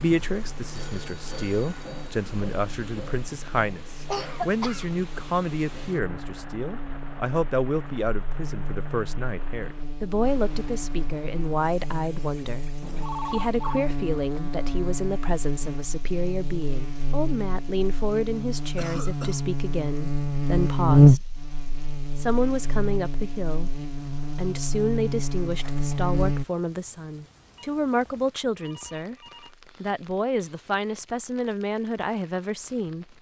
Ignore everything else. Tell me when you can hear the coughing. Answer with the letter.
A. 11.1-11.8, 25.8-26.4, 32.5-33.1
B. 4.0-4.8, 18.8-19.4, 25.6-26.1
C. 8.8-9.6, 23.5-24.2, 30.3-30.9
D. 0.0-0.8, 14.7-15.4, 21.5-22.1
B.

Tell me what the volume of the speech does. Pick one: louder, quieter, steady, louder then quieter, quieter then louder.
steady.